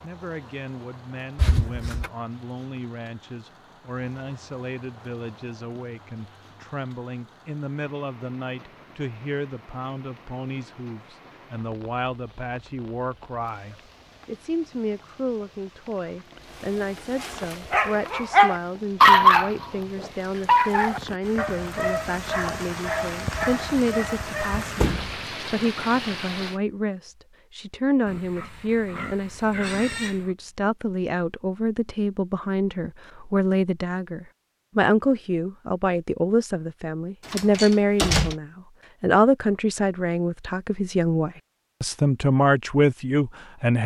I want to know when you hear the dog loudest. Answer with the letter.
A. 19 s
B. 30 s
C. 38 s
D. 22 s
A.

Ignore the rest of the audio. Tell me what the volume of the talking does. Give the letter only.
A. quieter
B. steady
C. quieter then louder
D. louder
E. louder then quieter
D.